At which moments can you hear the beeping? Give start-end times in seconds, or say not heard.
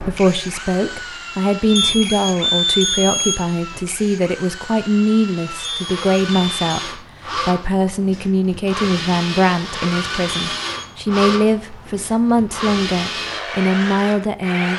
1.6-3.4, 5.5-7.0, 10.4-10.9.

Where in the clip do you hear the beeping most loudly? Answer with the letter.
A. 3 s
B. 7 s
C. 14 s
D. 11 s
A.